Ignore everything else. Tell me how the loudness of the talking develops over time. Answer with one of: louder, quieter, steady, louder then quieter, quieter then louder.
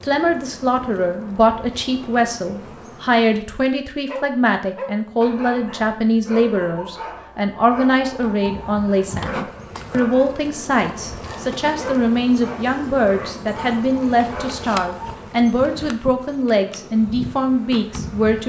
steady.